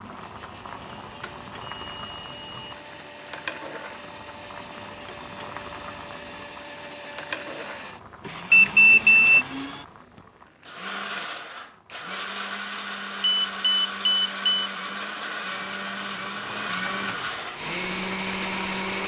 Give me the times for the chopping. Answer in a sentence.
The chopping can't be heard in this clip.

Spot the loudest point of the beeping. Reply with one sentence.
The volume of the beeping peaks at 9 seconds.